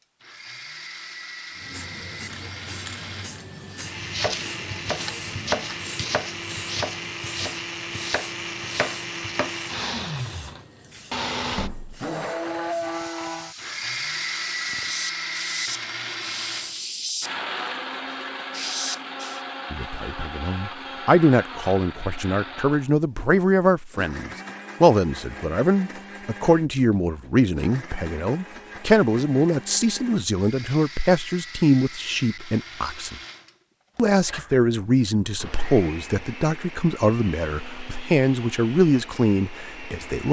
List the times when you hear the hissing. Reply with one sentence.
The hissing can be heard from 1.6 to 19.4 s.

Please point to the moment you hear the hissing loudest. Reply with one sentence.
The loudest moment of the hissing is at 17 seconds.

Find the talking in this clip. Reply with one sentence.
The talking can be heard from 19.7 to 33.1 s and from 34.0 to 40.2 s.